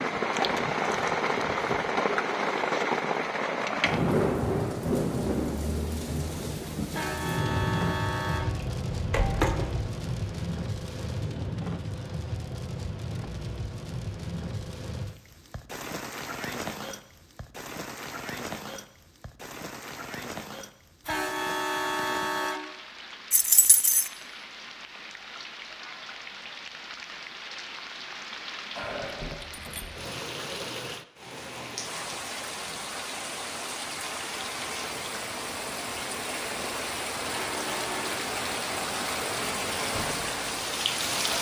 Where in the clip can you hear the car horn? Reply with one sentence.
You can hear the car horn from 6.9 to 8.4 s, from 21.1 to 22.6 s and from 37.2 to 38.1 s.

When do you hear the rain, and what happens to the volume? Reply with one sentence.
The rain can be heard from 0.0 to 41.3 s, getting quieter then louder.